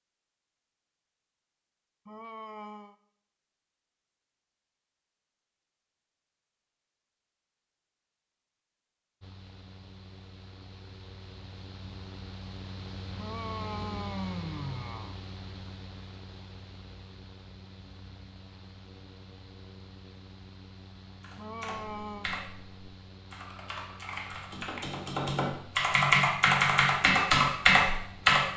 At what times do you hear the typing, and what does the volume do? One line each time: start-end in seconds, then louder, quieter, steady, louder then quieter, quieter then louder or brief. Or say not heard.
21.2-28.4 louder.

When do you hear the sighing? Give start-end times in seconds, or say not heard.
2.0-3.0, 13.2-15.2, 21.4-22.3.